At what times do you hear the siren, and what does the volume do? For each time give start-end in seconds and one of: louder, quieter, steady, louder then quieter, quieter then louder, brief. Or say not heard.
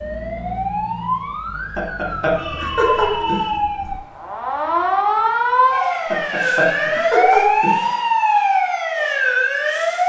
0.0-10.0 louder.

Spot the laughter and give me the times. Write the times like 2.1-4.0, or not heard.
1.8-3.5, 6.1-7.8.